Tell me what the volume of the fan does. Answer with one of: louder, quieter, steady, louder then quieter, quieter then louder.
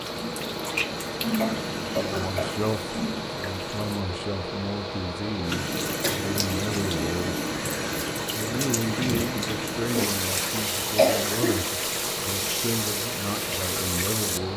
steady.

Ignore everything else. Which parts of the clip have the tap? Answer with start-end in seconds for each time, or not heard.
0.0-4.0, 5.5-14.5.